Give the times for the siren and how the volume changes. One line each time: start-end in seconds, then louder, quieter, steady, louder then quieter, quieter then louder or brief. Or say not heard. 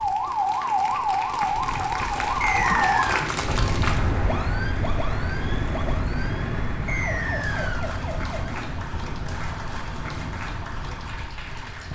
0.0-11.8 quieter.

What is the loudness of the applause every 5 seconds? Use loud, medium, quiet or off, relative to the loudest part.
loud, medium, medium.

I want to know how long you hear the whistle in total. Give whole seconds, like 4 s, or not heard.
2 s.